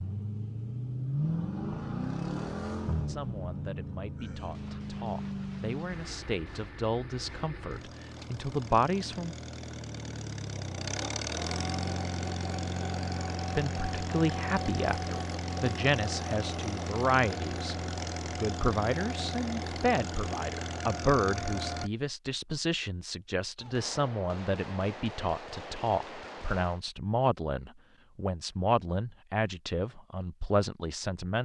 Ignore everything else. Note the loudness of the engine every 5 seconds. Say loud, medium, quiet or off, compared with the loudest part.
loud, medium, loud, loud, loud, off, off.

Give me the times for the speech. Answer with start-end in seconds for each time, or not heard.
3.0-9.3, 13.6-17.8, 18.4-31.4.